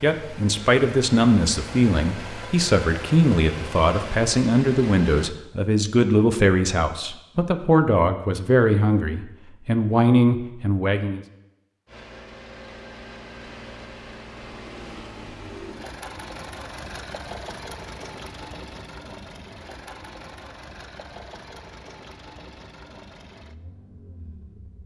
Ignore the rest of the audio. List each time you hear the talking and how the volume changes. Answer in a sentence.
The talking can be heard from 0.0 to 11.2 s, at a steady volume.